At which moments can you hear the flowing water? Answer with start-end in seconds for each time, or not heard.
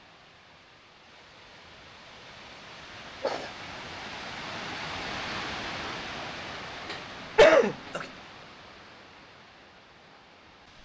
0.0-10.8.